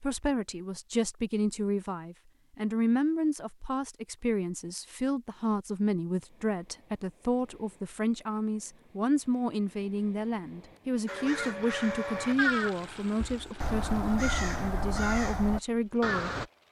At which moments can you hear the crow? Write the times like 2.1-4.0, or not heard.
11.1-16.4.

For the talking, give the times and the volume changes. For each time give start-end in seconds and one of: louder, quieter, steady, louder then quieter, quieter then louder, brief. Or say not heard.
0.0-16.4 steady.